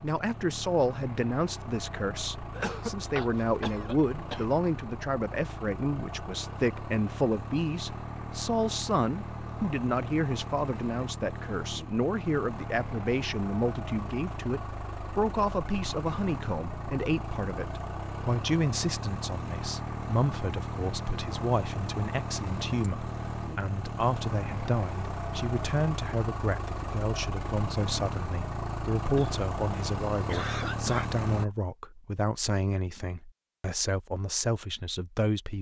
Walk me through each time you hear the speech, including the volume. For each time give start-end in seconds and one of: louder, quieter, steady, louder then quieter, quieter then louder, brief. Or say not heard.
0.0-35.5 steady.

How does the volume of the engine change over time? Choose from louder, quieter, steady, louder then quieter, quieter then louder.
louder.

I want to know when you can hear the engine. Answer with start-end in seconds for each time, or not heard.
0.0-31.5.